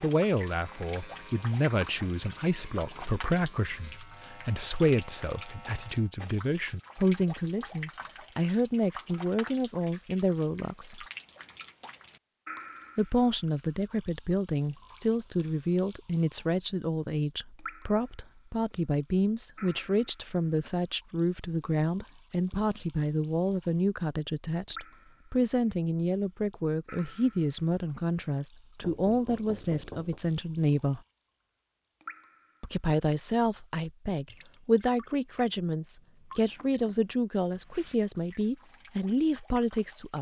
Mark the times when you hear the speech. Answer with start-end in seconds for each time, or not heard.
0.0-11.1, 12.9-31.0, 32.6-40.1.